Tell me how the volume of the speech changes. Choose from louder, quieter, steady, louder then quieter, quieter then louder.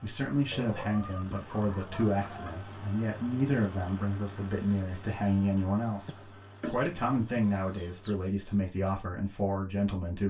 steady.